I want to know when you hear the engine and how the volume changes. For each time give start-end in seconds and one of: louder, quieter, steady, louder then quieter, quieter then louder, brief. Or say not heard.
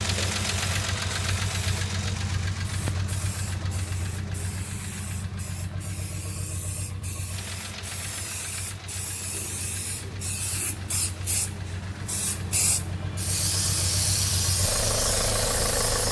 0.0-16.0 quieter then louder.